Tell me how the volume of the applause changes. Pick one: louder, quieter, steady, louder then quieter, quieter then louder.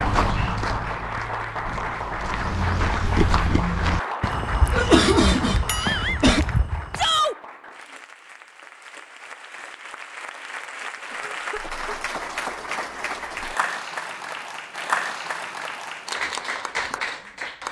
quieter then louder.